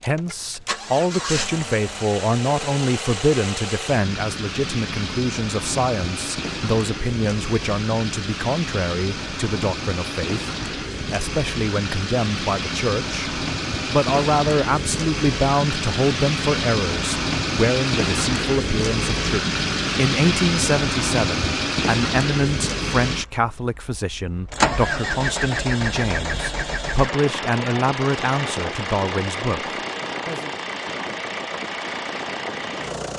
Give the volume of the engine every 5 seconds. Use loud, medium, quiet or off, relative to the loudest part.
medium, medium, loud, loud, loud, loud, medium.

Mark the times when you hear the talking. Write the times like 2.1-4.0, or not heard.
0.0-30.5.